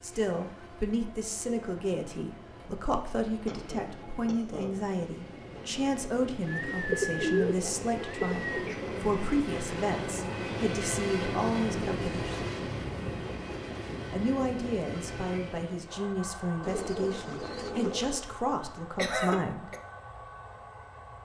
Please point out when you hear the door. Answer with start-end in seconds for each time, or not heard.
not heard.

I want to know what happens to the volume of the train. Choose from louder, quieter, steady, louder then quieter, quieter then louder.
louder then quieter.